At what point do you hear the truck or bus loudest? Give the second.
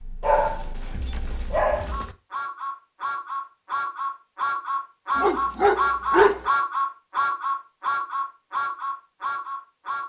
6 s.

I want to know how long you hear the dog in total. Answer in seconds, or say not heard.
3 s.